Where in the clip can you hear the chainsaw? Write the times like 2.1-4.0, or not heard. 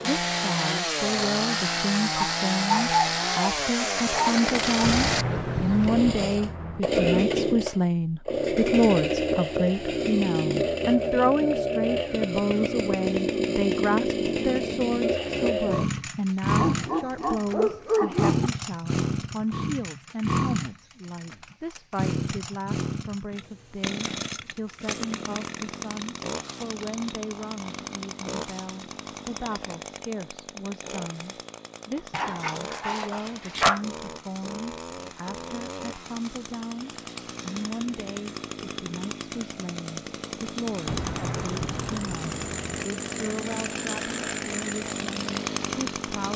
0.0-46.3.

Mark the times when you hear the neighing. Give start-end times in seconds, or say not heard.
not heard.